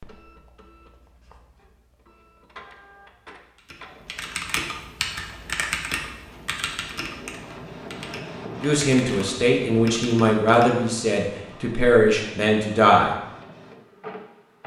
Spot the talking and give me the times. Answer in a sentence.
The talking can be heard from 8.6 to 13.1 s.